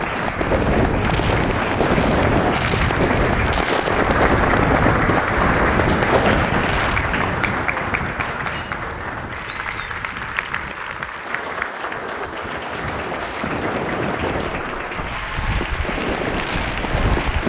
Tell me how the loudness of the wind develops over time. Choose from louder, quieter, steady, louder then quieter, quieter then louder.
quieter then louder.